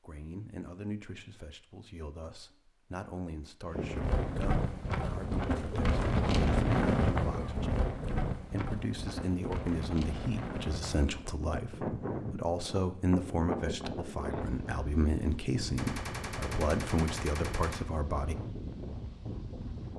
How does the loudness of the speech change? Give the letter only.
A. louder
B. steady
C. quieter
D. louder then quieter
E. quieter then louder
A.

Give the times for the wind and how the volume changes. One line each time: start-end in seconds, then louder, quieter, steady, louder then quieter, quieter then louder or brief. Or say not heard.
3.7-19.9 quieter.